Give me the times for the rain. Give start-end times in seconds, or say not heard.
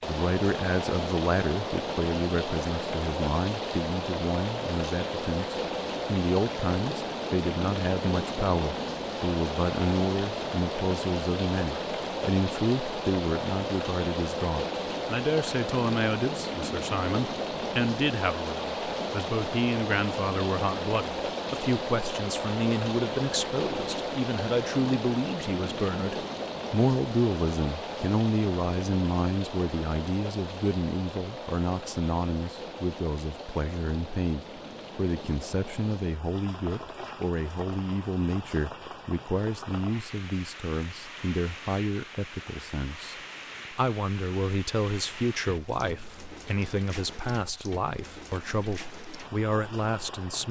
0.0-50.4.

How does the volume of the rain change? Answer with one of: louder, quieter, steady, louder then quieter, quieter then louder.
quieter.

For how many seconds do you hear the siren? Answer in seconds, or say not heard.
not heard.